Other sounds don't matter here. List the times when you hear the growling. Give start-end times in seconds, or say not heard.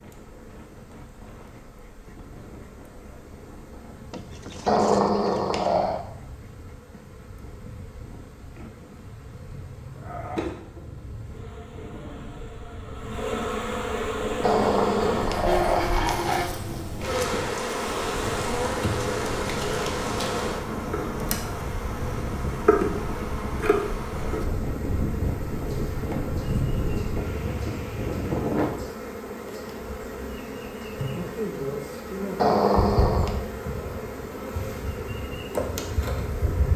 4.7-6.0, 14.4-16.4, 32.4-33.4.